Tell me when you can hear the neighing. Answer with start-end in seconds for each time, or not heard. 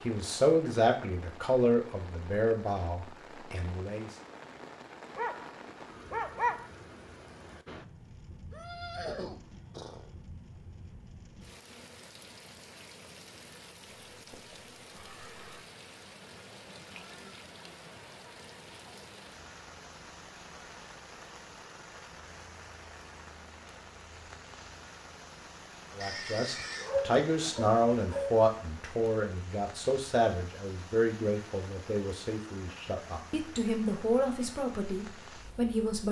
8.5-10.2, 14.2-15.7, 26.0-26.9.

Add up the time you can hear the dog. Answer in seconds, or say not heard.
3 s.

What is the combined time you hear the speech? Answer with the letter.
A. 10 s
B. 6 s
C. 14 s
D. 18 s
C.